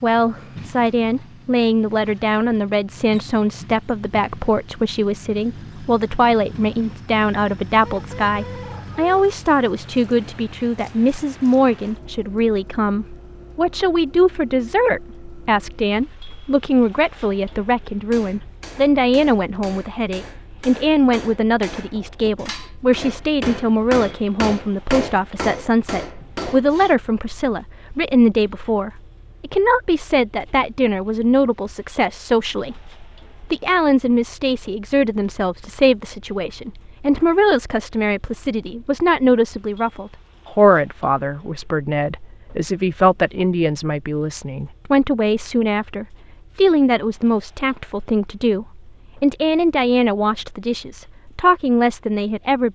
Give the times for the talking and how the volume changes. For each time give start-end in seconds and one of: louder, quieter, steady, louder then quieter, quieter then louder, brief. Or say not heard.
0.0-52.7 steady.